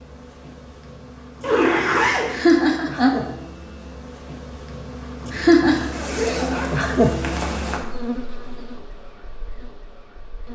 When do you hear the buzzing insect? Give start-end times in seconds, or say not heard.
0.0-10.4.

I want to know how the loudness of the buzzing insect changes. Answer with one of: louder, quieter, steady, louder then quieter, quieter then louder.
louder then quieter.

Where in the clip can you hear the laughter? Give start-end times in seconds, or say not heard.
2.3-3.1, 5.3-5.9.